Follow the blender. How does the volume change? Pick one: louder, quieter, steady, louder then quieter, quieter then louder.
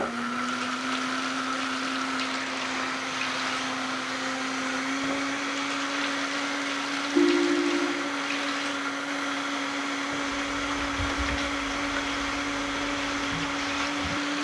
steady.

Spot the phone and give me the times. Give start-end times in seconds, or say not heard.
7.2-8.1.